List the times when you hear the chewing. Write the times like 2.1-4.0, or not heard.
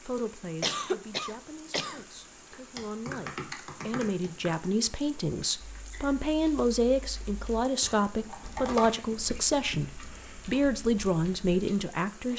not heard.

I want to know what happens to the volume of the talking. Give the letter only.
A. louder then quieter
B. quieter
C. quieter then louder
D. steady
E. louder
E.